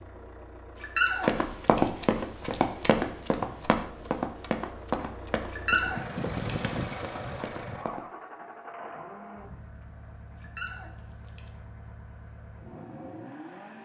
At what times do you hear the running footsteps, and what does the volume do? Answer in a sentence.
You can hear the running footsteps from 1.2 to 8.1 s, getting quieter.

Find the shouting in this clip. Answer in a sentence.
The shouting can't be heard in this clip.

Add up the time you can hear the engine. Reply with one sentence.
You can hear the engine for 14 seconds altogether.